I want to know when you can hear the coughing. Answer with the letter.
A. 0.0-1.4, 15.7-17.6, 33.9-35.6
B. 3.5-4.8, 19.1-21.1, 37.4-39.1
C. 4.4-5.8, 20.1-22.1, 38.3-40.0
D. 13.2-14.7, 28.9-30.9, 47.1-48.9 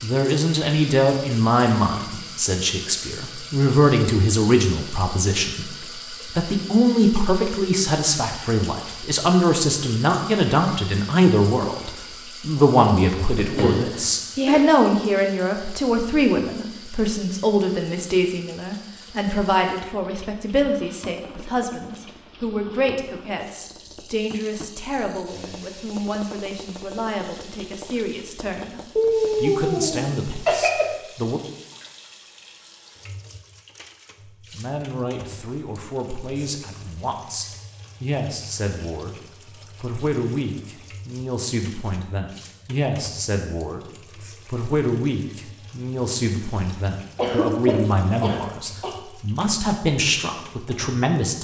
D.